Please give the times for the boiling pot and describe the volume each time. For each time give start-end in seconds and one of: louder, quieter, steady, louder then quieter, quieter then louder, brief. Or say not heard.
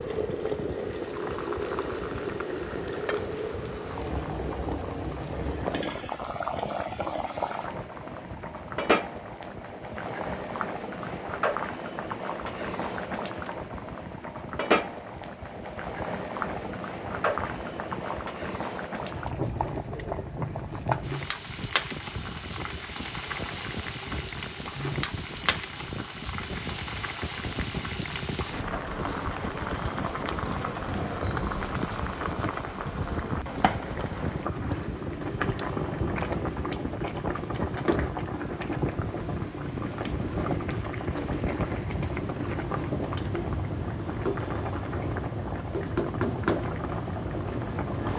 0.0-48.1 steady.